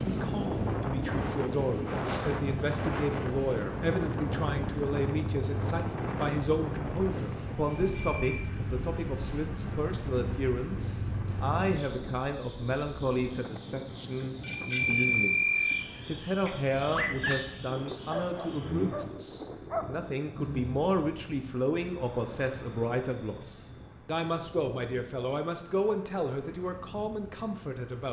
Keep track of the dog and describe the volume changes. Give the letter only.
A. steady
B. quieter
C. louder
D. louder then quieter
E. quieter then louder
D.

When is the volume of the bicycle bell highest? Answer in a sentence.
The loudest moment of the bicycle bell is at 15 seconds.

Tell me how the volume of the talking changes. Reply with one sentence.
The loudness of the talking stays about the same.